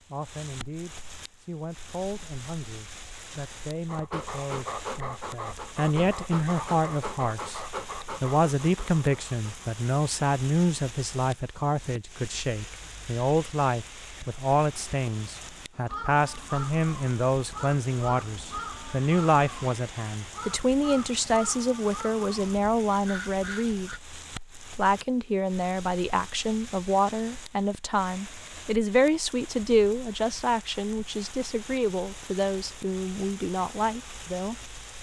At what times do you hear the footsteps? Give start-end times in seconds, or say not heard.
not heard.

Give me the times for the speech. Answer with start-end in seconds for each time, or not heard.
0.1-34.5.